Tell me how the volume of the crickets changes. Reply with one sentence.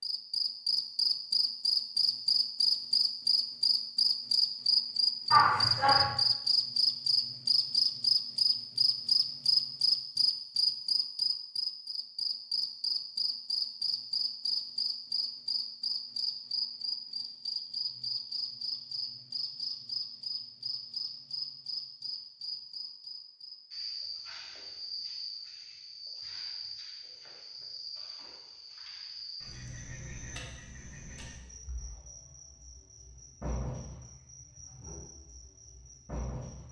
The volume of the crickets goes down.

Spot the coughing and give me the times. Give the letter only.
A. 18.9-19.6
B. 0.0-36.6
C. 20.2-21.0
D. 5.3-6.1
D.